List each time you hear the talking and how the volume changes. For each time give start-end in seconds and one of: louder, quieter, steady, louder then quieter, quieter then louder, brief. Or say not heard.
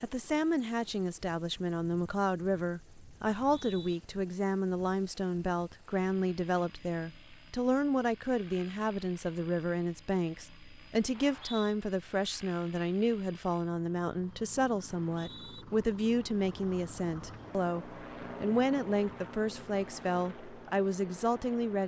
0.0-21.8 steady.